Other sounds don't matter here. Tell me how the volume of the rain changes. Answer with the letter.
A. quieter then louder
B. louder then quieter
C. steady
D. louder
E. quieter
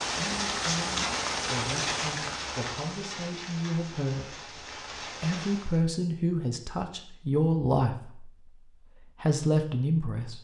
E.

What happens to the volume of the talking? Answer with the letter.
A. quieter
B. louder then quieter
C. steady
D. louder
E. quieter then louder
D.